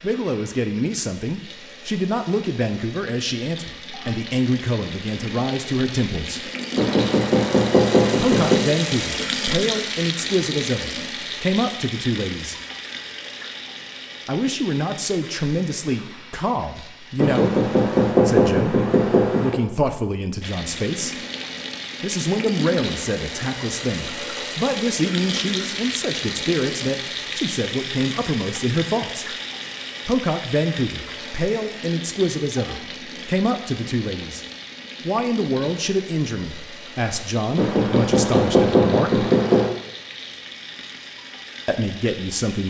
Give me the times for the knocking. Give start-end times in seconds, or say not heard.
6.8-8.6, 17.2-19.6, 37.5-39.7.